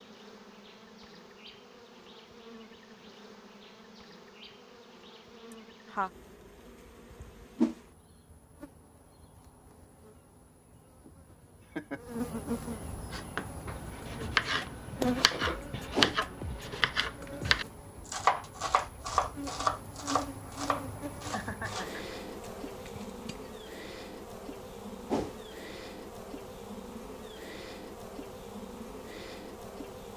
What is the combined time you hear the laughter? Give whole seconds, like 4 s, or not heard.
2 s.